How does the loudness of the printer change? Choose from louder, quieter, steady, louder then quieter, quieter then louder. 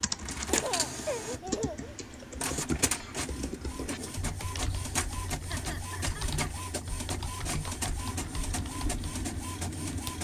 steady.